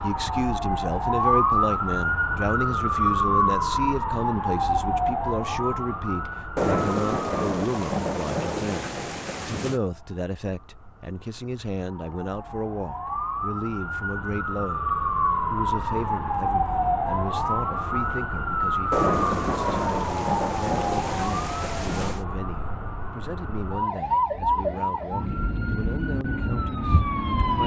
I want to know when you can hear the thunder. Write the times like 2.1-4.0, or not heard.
6.5-9.8, 18.9-22.2.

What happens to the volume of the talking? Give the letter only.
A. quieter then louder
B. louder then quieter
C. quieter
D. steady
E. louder
C.